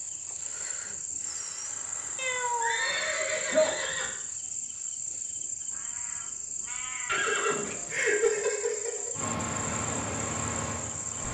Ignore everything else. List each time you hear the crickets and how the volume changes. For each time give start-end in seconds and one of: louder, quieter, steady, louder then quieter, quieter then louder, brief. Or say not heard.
0.0-11.2 steady.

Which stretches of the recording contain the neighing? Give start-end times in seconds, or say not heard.
2.6-4.1, 7.0-9.1.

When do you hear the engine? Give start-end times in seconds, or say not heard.
9.1-11.2.